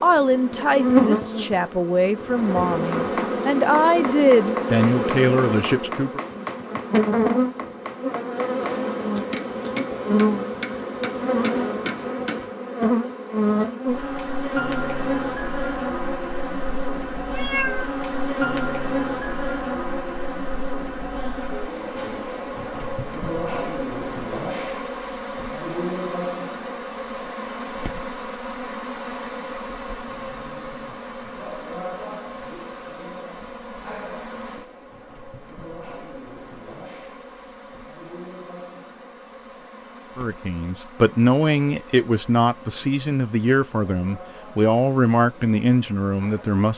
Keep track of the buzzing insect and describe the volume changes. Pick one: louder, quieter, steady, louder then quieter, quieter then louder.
quieter.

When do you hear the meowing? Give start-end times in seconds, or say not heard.
17.3-17.9.